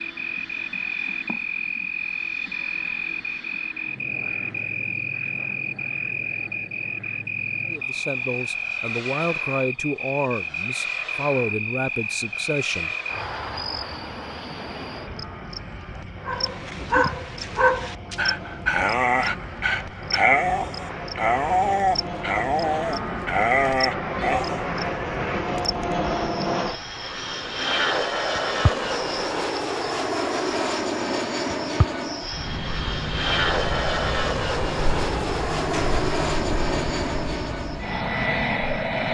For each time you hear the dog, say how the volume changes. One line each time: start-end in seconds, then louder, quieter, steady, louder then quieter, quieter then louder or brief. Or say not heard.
16.2-24.6 steady.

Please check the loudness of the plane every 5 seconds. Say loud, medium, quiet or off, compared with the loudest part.
quiet, quiet, quiet, quiet, medium, loud, loud, loud.